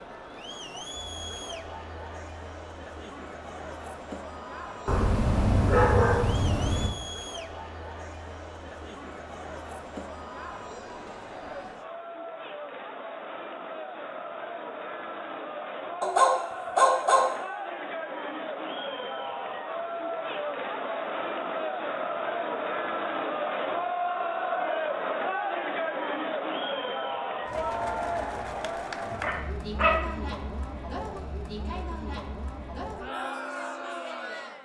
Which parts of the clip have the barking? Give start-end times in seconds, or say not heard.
4.8-6.9, 16.0-17.2, 29.2-30.0.